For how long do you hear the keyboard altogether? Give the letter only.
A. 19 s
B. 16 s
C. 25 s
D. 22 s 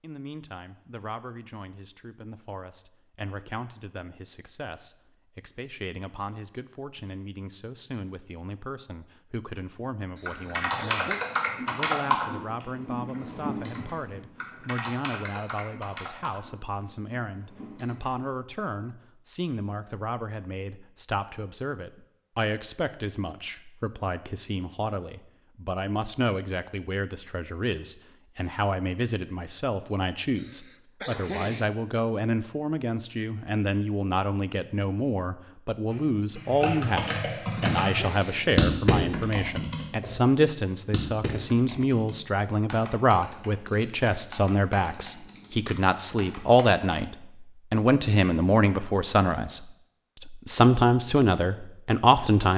A.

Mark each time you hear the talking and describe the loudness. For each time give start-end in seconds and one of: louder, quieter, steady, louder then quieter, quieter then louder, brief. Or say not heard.
0.0-52.5 louder.